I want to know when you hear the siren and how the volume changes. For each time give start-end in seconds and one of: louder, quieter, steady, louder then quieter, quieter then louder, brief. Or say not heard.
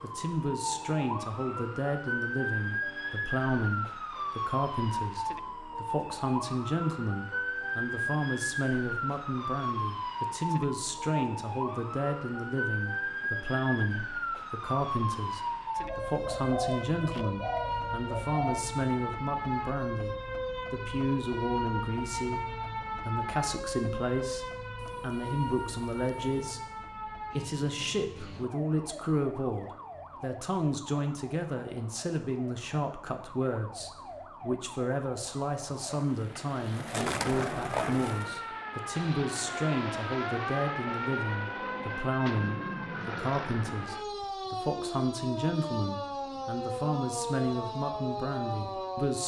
0.0-49.2 quieter then louder.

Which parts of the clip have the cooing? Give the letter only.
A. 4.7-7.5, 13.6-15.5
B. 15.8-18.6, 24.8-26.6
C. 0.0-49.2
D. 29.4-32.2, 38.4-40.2
B.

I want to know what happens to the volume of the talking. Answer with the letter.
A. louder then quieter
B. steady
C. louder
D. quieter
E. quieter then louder
B.